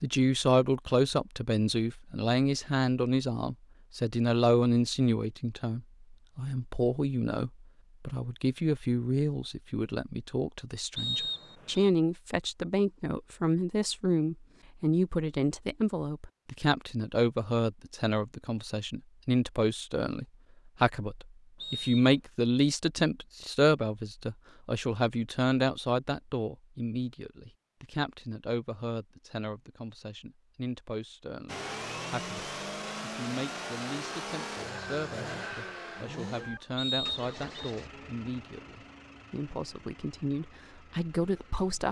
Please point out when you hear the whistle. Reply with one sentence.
The whistle can be heard from 10.9 to 11.9 s, from 21.6 to 22.2 s and from 36.8 to 37.7 s.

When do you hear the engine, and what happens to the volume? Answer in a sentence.
The engine can be heard from 31.4 to 41.8 s, getting quieter.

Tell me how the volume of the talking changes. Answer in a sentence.
The loudness of the talking goes down.